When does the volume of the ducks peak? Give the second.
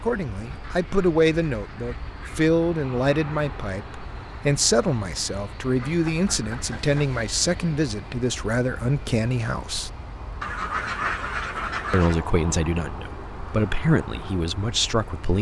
11 s.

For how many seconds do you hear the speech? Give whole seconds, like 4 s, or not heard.
13 s.